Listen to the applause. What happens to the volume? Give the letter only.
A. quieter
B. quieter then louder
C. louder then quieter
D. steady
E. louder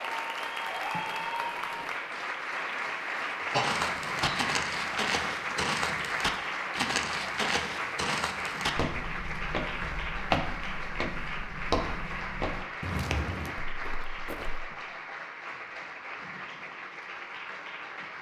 A.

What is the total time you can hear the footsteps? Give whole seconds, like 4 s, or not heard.
11 s.